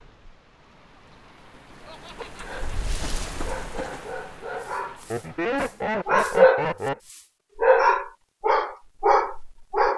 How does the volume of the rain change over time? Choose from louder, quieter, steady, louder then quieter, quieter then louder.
louder then quieter.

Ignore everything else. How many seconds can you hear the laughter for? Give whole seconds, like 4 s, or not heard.
3 s.